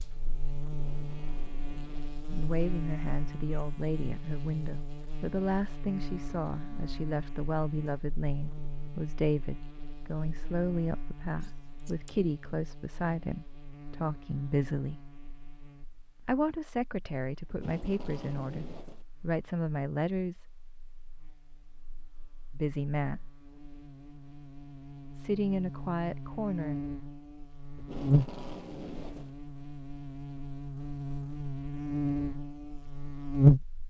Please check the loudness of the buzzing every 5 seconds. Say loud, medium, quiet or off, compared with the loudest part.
quiet, quiet, quiet, quiet, quiet, medium, loud.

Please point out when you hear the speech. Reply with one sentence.
The speech can be heard from 2.2 to 14.9 s, from 16.2 to 20.4 s, from 22.6 to 23.2 s and from 25.1 to 26.8 s.